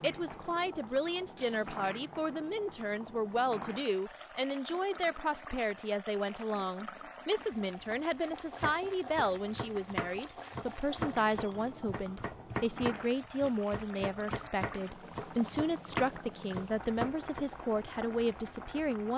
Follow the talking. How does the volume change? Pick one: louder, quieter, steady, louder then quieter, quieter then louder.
steady.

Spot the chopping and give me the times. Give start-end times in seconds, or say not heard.
8.6-17.4.